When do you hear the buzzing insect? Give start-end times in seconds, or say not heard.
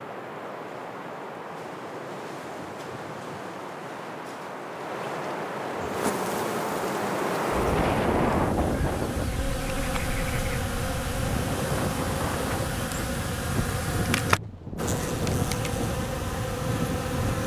5.8-17.4.